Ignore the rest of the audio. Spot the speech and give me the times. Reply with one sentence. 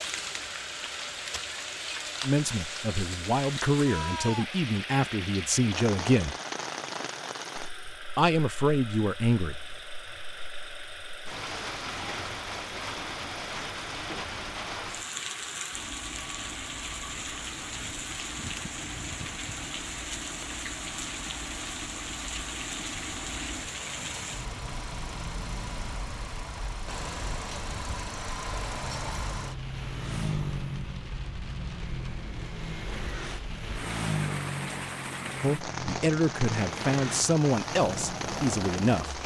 The speech can be heard from 2.2 to 6.3 s, from 8.2 to 9.8 s and from 35.4 to 39.2 s.